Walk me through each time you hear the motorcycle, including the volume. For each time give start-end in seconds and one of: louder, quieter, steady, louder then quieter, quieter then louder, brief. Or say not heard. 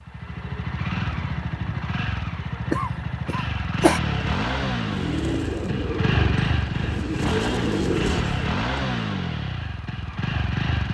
0.0-10.8 steady.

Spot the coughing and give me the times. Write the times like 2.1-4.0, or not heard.
2.7-4.0.